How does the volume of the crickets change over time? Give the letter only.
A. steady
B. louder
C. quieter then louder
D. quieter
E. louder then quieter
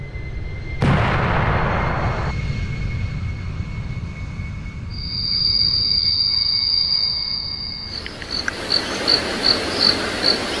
C.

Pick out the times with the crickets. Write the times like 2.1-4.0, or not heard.
4.9-10.5.